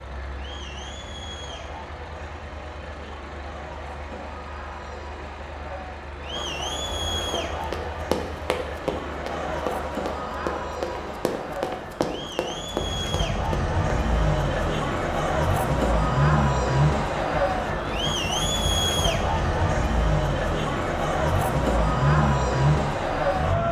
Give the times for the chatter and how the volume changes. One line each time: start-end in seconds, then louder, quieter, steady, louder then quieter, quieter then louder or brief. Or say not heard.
0.0-23.6 louder.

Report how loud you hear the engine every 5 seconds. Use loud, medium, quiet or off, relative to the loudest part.
quiet, quiet, medium, loud, loud.